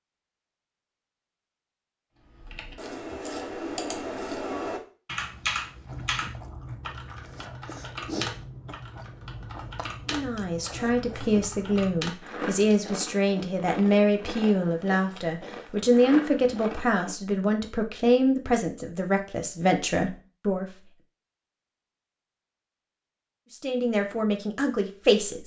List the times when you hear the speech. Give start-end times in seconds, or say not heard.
10.1-20.7, 23.5-25.4.